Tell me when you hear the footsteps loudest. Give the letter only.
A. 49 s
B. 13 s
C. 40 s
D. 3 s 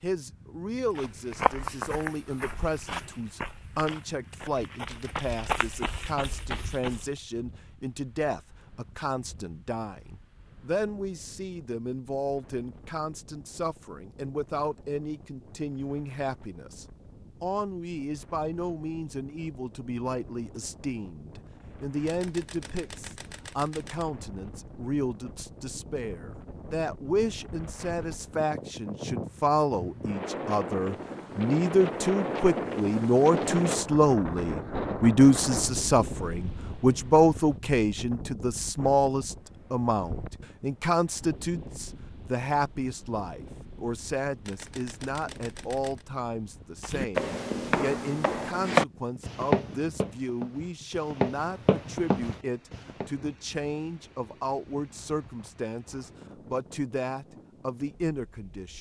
A.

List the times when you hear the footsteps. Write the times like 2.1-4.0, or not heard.
0.9-7.1, 46.8-53.0.